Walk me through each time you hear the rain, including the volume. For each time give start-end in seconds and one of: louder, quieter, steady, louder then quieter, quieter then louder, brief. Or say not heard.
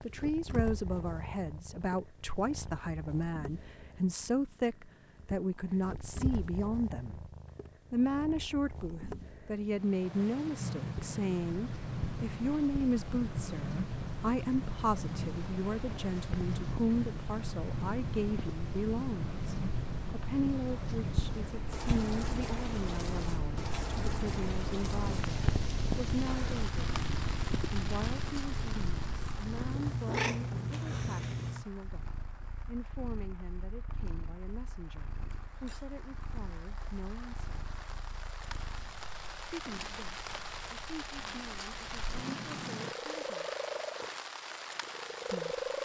9.7-45.8 quieter then louder.